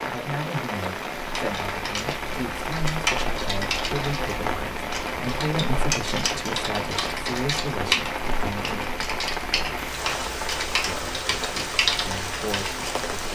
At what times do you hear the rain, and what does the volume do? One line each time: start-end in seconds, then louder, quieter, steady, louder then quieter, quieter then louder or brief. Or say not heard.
0.0-13.3 steady.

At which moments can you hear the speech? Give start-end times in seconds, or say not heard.
0.0-9.0, 10.8-13.3.